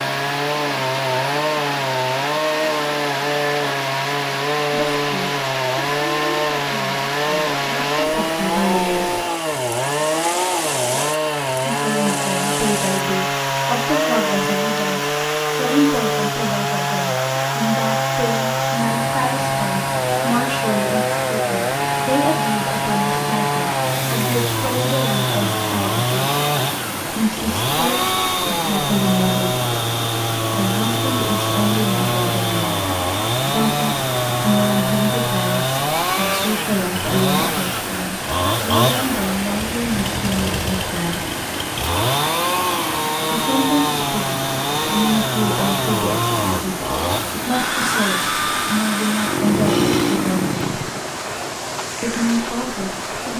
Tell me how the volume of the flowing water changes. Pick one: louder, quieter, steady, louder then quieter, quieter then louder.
steady.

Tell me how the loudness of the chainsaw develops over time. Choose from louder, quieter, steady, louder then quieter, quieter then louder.
steady.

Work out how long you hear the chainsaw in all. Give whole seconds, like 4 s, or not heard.
51 s.